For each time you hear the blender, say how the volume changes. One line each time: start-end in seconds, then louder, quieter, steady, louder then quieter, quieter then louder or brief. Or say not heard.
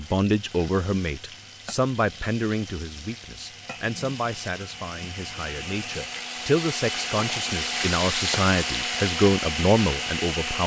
0.0-10.6 louder.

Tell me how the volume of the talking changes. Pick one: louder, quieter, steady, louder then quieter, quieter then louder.
quieter then louder.